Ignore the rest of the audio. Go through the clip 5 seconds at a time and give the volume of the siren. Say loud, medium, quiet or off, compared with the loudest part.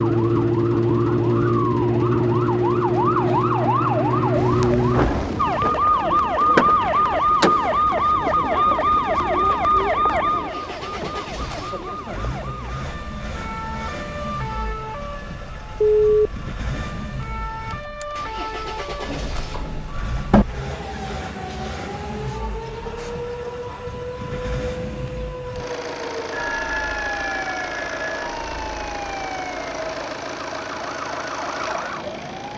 loud, loud, medium, quiet, quiet, quiet, quiet.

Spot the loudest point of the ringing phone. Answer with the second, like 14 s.
16 s.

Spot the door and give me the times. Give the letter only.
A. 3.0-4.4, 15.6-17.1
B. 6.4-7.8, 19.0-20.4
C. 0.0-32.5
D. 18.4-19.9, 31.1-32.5
B.